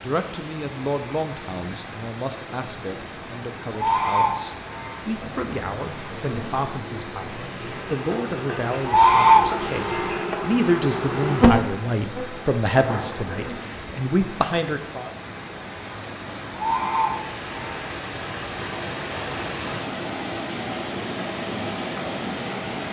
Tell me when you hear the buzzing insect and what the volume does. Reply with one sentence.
The buzzing insect can be heard from 5.2 to 13.9 s, getting louder then quieter.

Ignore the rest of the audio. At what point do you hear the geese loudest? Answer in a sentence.
The volume of the geese peaks at 9 seconds.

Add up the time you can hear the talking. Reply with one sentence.
The talking can be heard for 15 seconds in total.